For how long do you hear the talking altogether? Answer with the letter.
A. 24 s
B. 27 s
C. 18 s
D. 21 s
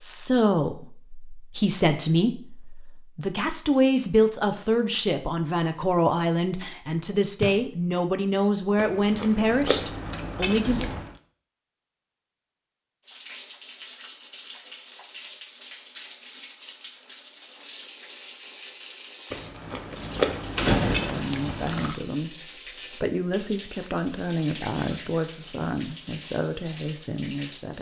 C.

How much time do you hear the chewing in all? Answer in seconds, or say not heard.
5 s.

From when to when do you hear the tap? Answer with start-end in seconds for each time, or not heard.
13.0-27.7.